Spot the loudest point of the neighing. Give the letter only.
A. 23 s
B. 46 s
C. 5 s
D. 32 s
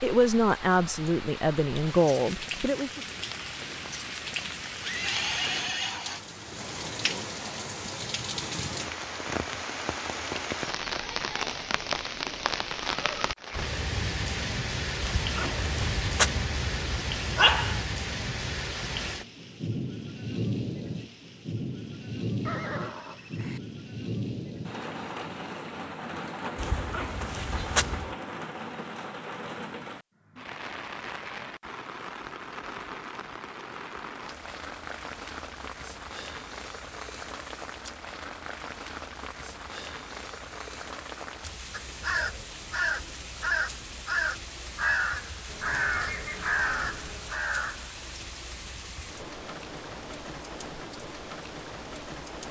C.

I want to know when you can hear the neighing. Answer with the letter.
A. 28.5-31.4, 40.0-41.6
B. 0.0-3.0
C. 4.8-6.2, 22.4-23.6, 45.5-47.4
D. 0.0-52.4
C.